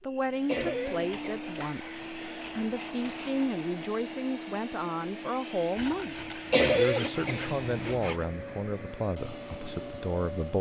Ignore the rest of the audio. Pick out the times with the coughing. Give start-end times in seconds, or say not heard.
0.5-2.0, 6.5-8.1.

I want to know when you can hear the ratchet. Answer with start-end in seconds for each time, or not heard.
not heard.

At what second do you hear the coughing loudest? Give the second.
7 s.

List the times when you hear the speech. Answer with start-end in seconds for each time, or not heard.
0.0-10.5.